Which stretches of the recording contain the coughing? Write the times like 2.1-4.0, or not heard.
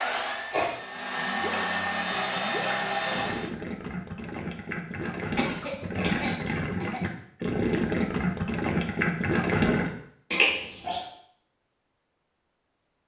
0.1-0.8, 5.0-7.0, 10.3-11.0.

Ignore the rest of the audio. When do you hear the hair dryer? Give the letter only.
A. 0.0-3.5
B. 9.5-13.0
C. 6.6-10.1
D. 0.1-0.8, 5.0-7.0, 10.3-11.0
A.